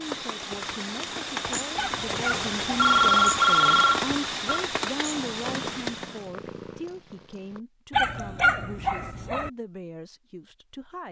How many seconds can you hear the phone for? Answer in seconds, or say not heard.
2 s.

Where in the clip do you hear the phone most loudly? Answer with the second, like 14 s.
3 s.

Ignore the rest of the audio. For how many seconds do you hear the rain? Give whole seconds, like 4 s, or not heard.
6 s.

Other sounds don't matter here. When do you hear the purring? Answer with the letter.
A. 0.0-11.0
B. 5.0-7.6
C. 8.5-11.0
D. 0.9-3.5
B.